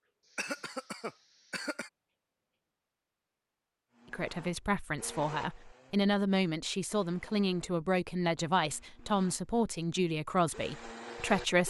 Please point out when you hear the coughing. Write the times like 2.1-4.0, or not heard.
0.3-1.9.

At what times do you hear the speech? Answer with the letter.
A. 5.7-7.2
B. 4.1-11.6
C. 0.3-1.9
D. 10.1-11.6
B.